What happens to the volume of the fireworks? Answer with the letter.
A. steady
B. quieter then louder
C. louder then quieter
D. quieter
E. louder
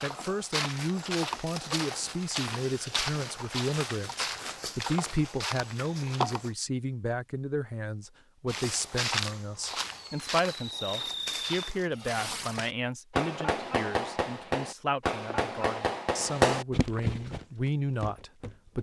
E.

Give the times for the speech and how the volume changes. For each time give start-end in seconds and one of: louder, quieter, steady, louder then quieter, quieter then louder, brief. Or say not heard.
0.0-18.7 steady.